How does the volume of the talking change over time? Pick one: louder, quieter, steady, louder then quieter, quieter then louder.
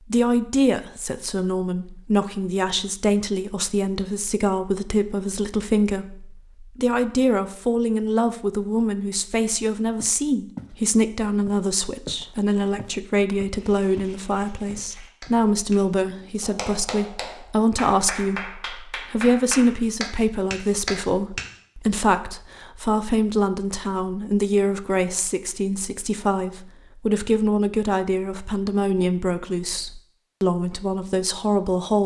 steady.